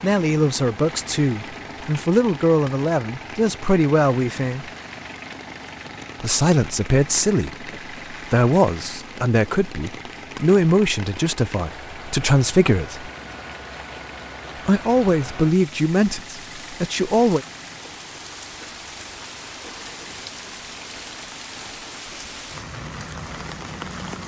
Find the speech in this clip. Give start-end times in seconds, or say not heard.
0.0-4.7, 6.2-13.1, 14.7-17.4.